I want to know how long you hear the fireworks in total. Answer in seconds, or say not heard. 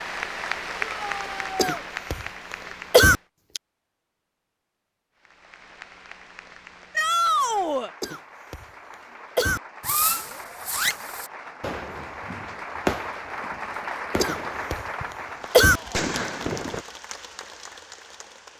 7 s.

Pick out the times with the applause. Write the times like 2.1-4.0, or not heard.
0.0-3.2, 5.2-18.5.